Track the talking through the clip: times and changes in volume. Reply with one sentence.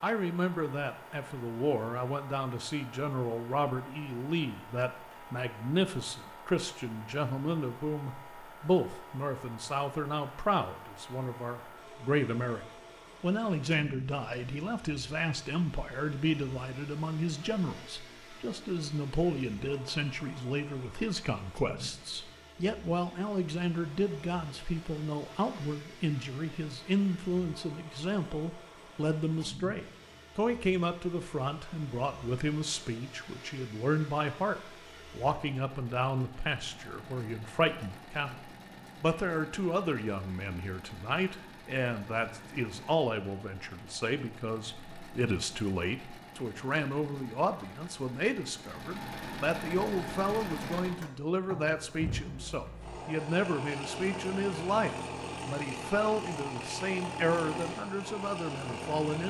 The talking can be heard from 0.0 to 59.2 s, at a steady volume.